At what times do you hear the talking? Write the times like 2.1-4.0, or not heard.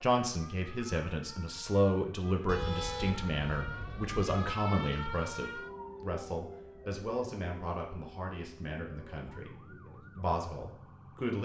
0.0-11.4.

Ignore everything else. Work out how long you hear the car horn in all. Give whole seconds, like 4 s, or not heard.
2 s.